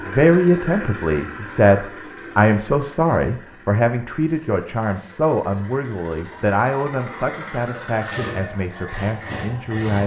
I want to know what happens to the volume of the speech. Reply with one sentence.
The loudness of the speech goes down.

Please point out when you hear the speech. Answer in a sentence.
You can hear the speech from 0.1 to 10.0 s.